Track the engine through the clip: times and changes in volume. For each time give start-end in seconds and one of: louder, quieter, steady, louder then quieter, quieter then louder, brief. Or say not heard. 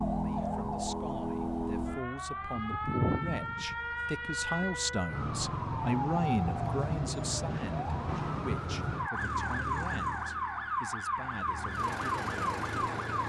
9.1-13.2 quieter then louder.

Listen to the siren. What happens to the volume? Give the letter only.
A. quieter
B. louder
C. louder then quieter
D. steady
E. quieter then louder
D.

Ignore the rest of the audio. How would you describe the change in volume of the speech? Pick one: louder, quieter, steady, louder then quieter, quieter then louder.
louder then quieter.